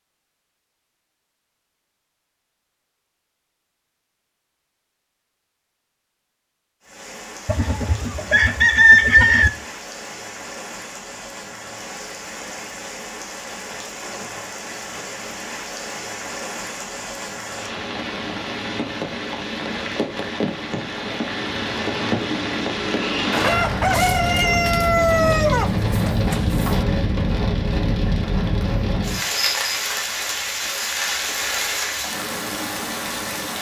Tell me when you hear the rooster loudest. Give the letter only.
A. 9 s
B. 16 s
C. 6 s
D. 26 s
A.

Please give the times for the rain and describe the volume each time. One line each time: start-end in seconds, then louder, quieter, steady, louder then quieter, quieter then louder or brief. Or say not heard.
6.8-33.5 louder.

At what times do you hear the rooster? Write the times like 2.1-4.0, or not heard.
7.5-9.5, 23.3-26.9.